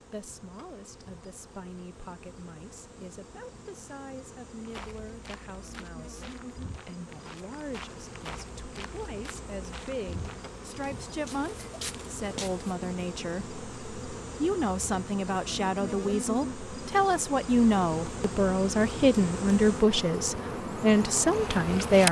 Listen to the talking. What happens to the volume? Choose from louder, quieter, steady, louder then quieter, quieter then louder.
louder.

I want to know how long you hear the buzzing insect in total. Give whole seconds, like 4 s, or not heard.
22 s.